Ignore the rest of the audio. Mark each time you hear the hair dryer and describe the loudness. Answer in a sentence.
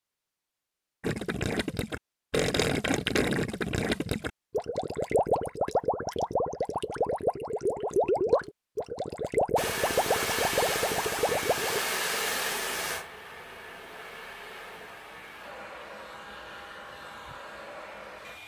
The hair dryer can be heard from 9.6 to 18.4 s, getting quieter.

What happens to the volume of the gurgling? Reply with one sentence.
The volume of the gurgling stays about the same.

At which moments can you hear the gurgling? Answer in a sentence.
You can hear the gurgling from 1.0 to 11.8 s.